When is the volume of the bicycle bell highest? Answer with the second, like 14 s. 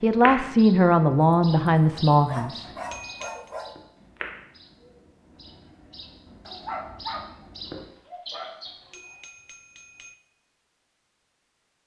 3 s.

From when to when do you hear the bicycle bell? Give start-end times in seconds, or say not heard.
2.7-3.5, 8.7-10.2.